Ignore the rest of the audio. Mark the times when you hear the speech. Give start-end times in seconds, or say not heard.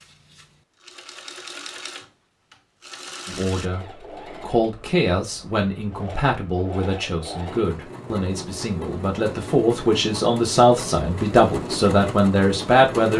3.2-13.1.